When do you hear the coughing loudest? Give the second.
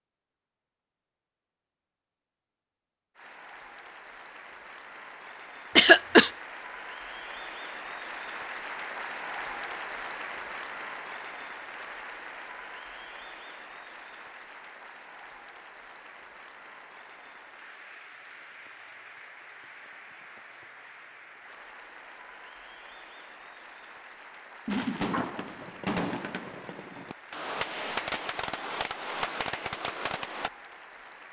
6 s.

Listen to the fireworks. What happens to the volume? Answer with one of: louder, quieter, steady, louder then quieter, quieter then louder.
quieter then louder.